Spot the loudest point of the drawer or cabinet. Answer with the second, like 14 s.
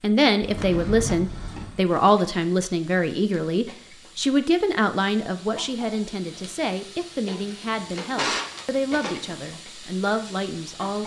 8 s.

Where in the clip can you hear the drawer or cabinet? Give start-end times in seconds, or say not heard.
0.4-1.9, 7.6-9.4.